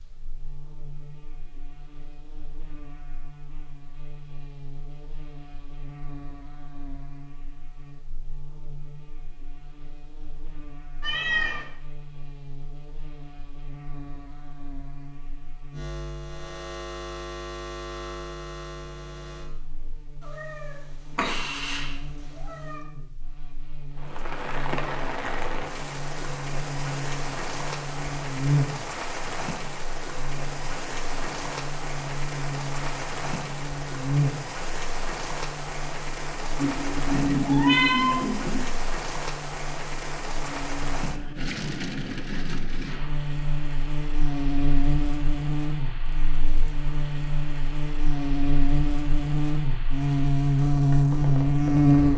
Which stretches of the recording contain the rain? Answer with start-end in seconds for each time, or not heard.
23.9-52.1.